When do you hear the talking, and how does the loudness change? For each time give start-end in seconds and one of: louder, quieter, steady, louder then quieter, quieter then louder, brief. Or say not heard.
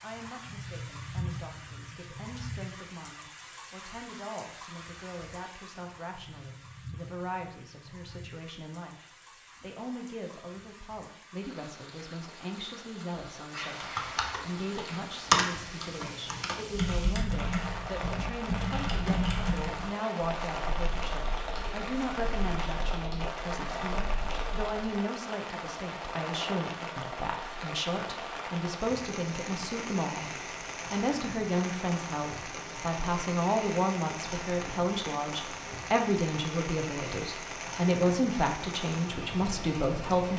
0.0-40.3 louder.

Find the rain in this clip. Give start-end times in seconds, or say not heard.
0.0-40.3.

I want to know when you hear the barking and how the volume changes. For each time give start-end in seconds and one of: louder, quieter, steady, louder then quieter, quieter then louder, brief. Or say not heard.
not heard.